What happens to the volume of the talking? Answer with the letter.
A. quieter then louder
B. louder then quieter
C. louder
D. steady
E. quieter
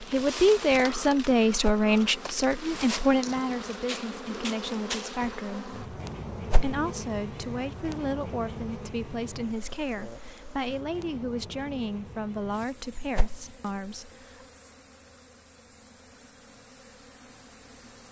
E.